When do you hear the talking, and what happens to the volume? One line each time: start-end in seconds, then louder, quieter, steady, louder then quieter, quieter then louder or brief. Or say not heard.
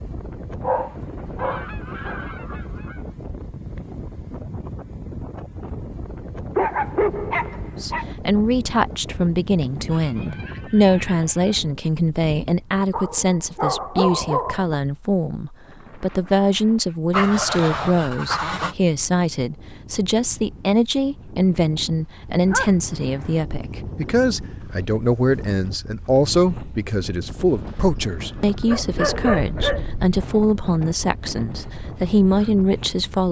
7.8-33.2 steady.